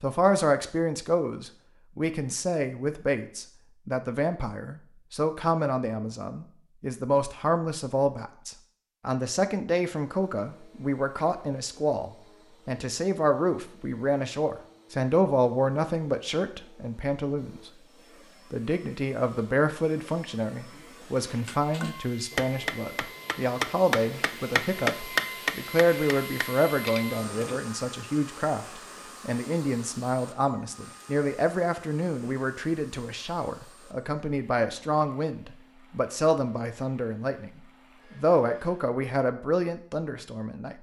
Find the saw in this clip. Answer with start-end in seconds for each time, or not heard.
not heard.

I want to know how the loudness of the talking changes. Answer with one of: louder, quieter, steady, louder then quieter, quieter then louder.
steady.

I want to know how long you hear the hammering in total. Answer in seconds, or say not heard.
6 s.